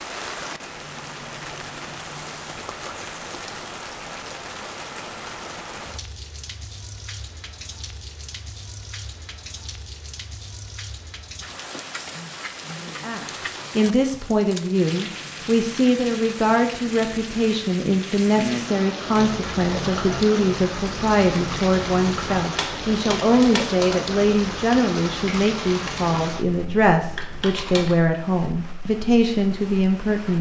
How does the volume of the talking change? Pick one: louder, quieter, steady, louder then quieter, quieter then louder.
steady.